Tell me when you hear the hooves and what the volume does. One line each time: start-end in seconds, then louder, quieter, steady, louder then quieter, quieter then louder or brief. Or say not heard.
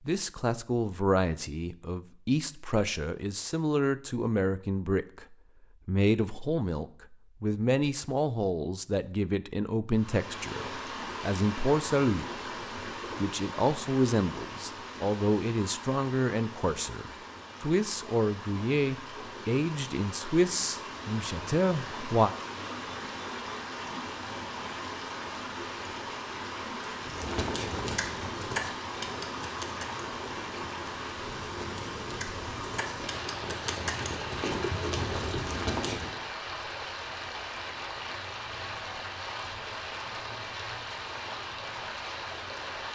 27.0-36.2 quieter then louder.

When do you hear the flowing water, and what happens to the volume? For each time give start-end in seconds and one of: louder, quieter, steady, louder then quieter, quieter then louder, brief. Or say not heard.
9.9-42.9 steady.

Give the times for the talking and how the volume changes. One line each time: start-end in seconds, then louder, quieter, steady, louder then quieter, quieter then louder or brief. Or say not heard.
0.1-12.2 steady
13.2-22.3 steady.